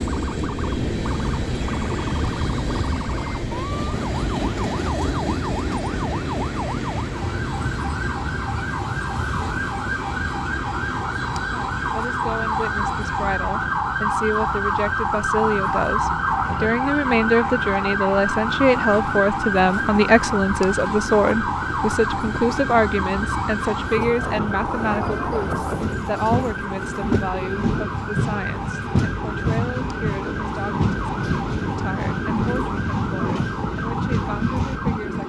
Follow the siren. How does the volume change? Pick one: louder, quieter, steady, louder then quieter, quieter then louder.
louder then quieter.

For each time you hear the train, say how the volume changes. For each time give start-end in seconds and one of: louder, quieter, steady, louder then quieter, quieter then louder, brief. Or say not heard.
0.0-35.2 quieter then louder.